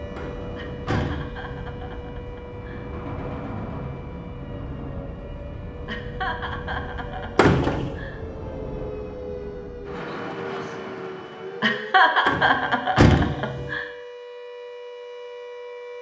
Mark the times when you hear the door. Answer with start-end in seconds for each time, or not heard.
0.1-1.6, 7.3-7.9, 12.2-13.7.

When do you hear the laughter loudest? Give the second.
12 s.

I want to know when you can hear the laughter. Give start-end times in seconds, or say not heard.
0.6-2.9, 5.8-8.2, 11.6-13.8.